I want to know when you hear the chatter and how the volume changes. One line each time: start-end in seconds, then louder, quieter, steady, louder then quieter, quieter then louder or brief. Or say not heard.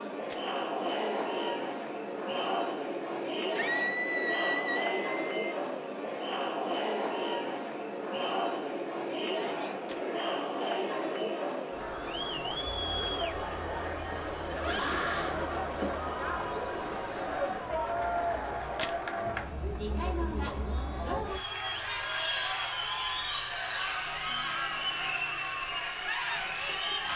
0.0-27.1 steady.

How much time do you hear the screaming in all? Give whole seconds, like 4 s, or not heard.
4 s.